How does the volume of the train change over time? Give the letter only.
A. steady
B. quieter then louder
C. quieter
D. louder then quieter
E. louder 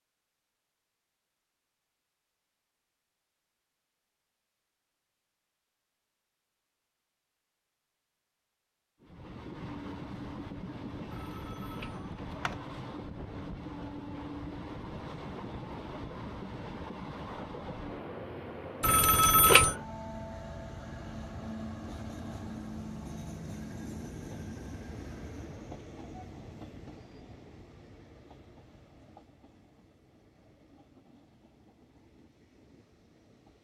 C.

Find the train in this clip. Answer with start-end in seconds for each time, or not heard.
9.0-33.5.